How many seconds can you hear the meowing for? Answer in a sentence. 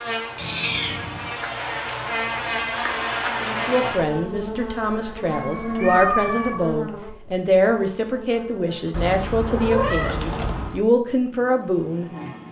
You can hear the meowing for 4 seconds altogether.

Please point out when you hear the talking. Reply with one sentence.
You can hear the talking from 3.4 to 12.4 s.